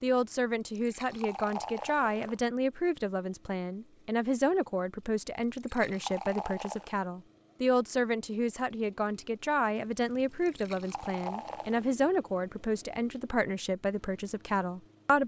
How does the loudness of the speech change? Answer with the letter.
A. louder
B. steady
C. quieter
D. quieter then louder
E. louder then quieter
B.